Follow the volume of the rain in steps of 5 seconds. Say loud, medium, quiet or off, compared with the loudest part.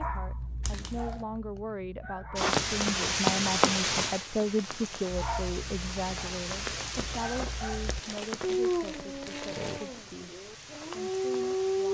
loud, medium, quiet.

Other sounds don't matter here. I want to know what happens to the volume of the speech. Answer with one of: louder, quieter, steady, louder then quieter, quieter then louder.
louder then quieter.